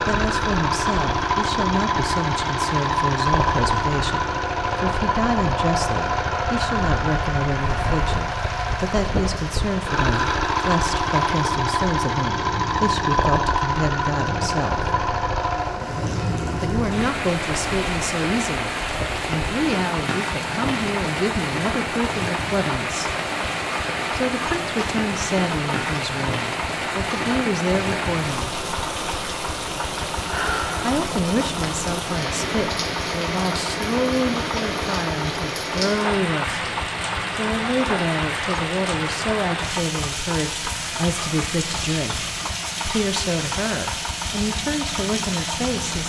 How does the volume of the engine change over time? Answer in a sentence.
The loudness of the engine goes down.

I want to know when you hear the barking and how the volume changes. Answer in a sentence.
You can't hear the barking here.